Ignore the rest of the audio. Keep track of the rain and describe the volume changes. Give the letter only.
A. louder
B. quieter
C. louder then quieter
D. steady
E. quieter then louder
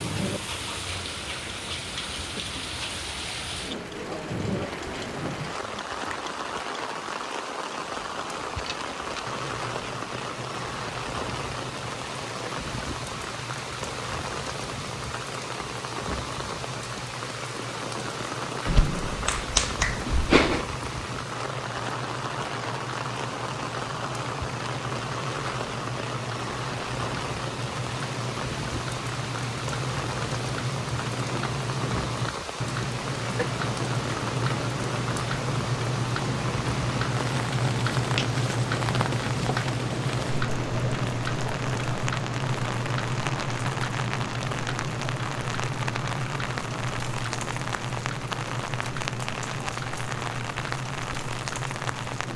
D.